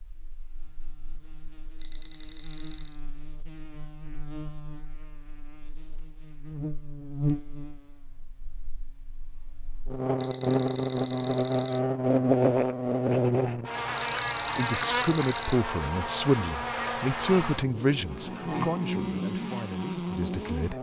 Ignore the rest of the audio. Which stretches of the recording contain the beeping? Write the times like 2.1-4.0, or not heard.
1.8-3.0, 10.2-11.8, 13.9-15.6.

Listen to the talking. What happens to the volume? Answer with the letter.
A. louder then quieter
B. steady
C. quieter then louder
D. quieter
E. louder
D.